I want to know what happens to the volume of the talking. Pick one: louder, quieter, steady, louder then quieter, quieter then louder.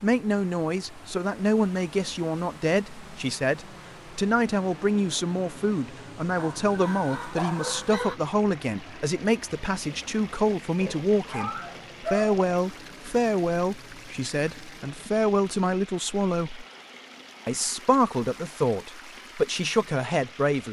steady.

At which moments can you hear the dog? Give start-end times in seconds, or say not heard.
6.3-8.2, 10.8-12.4.